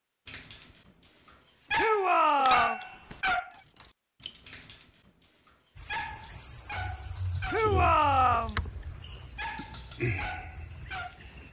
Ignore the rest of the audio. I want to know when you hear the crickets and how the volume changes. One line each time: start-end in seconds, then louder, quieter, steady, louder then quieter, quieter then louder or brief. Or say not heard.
5.8-11.4 steady.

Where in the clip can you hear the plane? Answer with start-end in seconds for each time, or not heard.
not heard.